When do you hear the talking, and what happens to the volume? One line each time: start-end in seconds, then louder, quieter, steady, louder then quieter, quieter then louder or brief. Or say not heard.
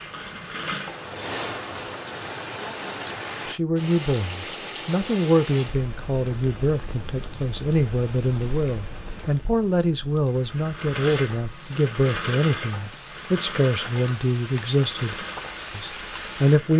3.5-15.2 steady
15.8-16.7 brief.